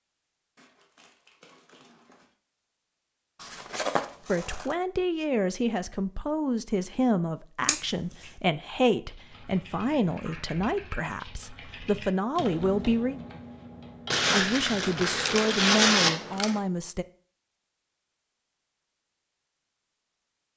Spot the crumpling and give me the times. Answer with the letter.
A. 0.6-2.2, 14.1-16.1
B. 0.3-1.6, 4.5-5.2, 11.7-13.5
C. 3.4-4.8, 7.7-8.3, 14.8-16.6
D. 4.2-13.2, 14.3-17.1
A.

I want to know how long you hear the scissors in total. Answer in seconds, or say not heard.
4 s.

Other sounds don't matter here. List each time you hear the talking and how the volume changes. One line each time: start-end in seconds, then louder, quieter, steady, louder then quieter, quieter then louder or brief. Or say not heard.
4.2-13.2 steady
14.3-17.1 brief.